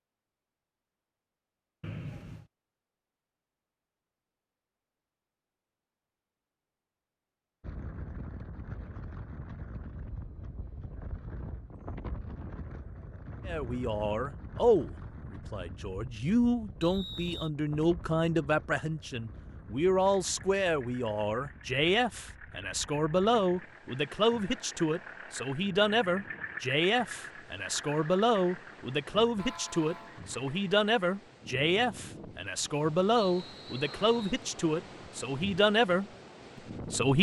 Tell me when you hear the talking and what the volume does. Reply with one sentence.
You can hear the talking from 13.4 to 37.1 s, at a steady volume.